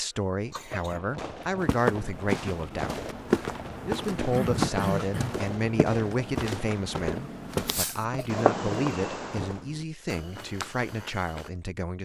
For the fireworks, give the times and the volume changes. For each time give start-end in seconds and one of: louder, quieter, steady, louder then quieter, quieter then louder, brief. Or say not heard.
0.5-9.7 louder.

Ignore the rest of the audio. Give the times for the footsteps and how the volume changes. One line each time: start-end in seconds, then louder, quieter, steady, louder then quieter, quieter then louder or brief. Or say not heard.
1.6-11.5 quieter.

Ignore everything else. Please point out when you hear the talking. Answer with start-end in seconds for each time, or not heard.
0.0-3.0, 3.9-12.0.